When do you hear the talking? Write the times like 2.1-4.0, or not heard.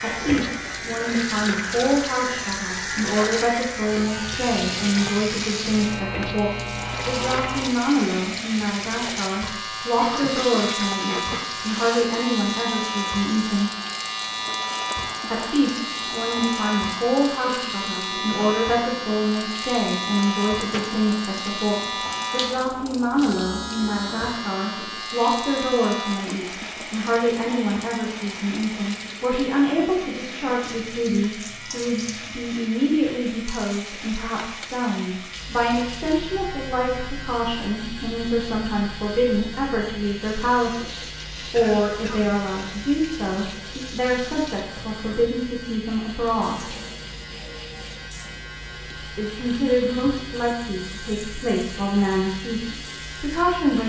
0.0-13.7, 15.3-46.8, 49.1-53.8.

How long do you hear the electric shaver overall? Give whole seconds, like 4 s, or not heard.
54 s.